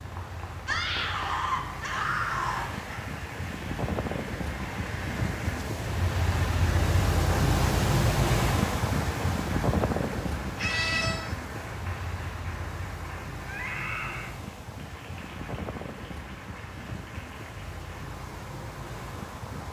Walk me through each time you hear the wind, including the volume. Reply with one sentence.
The wind can be heard from 0.0 to 19.6 s, getting louder then quieter.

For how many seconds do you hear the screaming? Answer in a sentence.
You can hear the screaming for 4 seconds altogether.